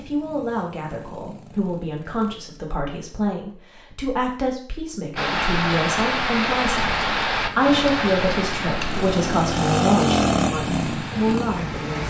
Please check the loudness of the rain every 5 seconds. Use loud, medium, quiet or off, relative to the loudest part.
off, loud, medium.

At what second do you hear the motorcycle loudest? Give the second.
10 s.